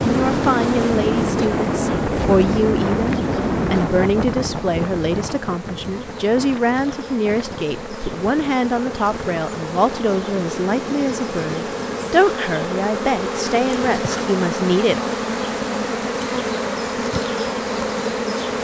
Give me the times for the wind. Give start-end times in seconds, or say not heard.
0.0-12.2.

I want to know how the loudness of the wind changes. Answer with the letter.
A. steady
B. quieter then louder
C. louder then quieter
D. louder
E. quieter
E.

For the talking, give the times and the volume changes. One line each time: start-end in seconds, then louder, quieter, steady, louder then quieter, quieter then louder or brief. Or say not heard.
0.0-15.0 steady.